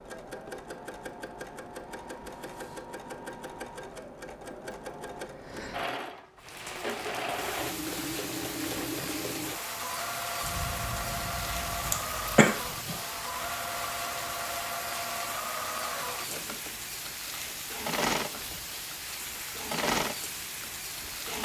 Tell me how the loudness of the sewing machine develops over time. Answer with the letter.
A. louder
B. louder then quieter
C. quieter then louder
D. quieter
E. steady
A.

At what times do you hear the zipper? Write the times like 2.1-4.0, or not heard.
not heard.